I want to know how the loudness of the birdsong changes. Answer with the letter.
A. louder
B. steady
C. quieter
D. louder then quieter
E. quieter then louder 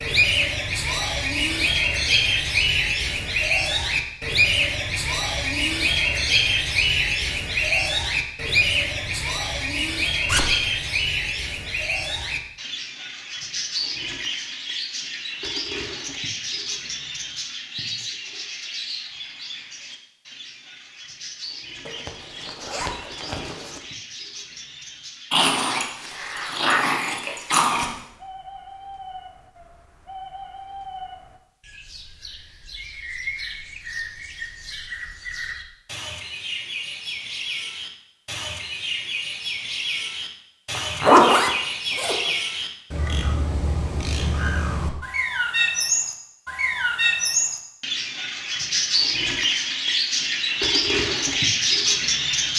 E.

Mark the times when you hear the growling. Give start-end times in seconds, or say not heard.
25.3-27.9.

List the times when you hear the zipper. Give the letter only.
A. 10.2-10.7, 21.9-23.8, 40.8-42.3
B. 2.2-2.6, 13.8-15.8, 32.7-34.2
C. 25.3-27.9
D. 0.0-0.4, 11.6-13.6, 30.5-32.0
A.